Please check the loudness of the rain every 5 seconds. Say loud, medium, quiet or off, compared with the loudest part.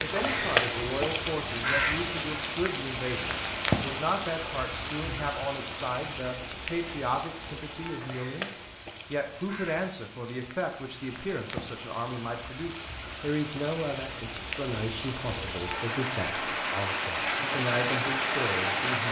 loud, medium, medium, loud.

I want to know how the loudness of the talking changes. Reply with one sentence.
The loudness of the talking stays about the same.